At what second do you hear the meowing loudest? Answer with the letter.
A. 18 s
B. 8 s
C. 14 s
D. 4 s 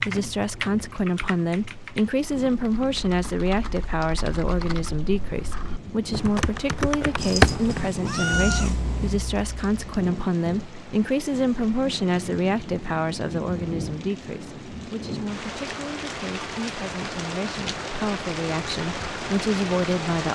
B.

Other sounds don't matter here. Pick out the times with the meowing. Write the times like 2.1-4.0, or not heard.
7.2-9.2.